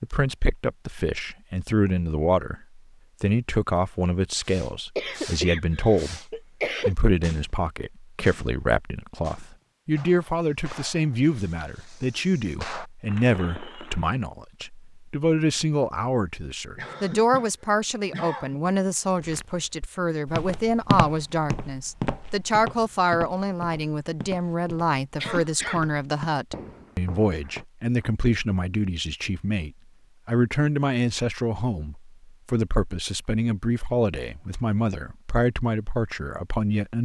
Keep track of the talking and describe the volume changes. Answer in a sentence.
The volume of the talking stays about the same.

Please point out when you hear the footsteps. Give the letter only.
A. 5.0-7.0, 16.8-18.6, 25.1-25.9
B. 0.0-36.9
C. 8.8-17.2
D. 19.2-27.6
D.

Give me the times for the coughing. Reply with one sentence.
The coughing can be heard from 5.0 to 7.0 s, from 16.8 to 18.6 s and from 25.1 to 25.9 s.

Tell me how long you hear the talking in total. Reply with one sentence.
The talking can be heard for 37 seconds in total.